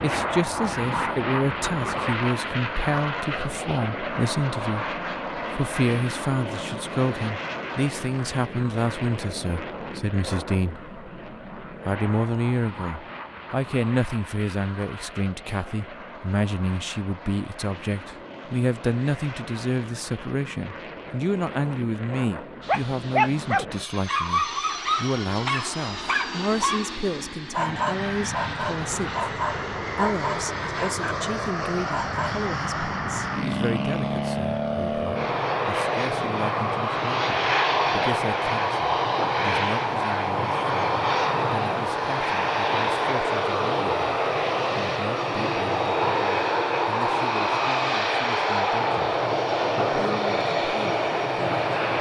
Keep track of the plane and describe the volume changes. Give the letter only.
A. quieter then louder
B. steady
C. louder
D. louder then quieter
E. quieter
A.